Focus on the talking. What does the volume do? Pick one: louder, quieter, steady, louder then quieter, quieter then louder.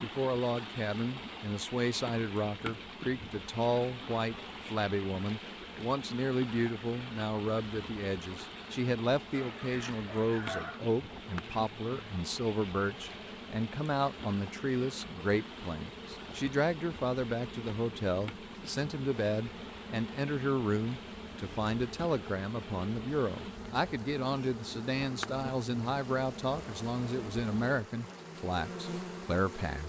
steady.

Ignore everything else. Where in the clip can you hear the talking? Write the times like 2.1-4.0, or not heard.
0.0-29.8.